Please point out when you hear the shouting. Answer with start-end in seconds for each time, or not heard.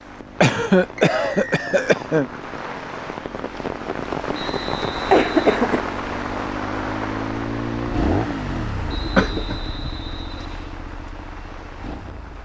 not heard.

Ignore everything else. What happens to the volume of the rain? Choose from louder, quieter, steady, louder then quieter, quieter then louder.
louder then quieter.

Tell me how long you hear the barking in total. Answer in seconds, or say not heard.
not heard.